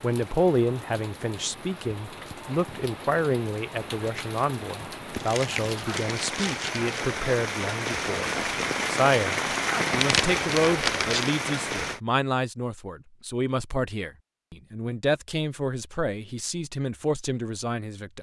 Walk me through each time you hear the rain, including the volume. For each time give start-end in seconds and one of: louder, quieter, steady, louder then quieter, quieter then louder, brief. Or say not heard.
0.0-12.0 louder.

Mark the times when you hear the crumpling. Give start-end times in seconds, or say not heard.
5.1-7.0, 9.8-11.3.